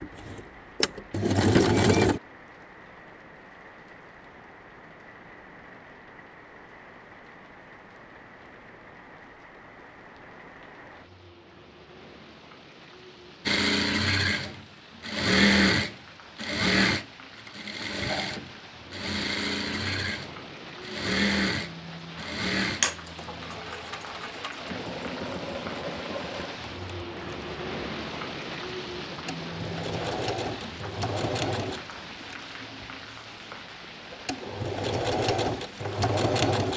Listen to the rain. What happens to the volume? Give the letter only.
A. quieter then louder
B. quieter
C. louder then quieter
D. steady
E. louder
E.